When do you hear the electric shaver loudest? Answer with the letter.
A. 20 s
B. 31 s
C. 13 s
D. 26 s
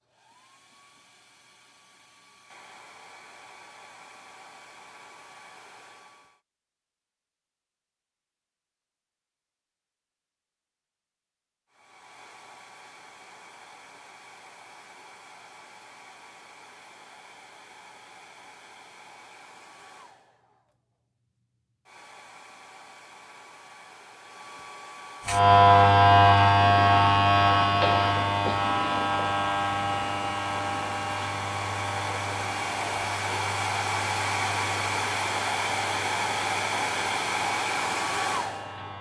D.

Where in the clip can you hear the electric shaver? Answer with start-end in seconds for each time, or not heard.
25.2-38.9.